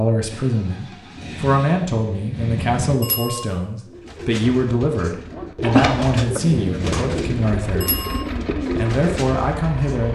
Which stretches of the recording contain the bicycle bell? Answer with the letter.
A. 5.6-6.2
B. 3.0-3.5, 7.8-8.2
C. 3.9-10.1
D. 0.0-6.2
B.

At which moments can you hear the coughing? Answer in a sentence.
You can hear the coughing from 5.6 to 6.2 s.